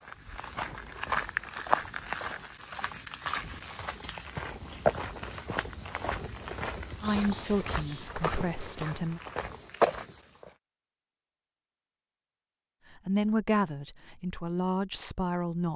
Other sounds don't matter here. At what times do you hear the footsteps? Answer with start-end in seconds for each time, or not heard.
0.0-10.5.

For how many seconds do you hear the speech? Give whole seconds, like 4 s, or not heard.
5 s.